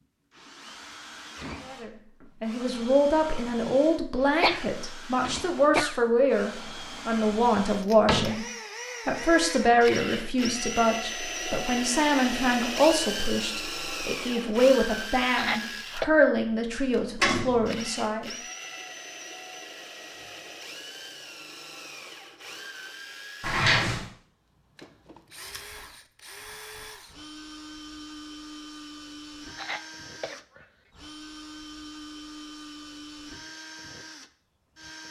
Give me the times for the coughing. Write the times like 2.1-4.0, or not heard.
4.4-6.0, 15.3-16.1, 29.5-30.6.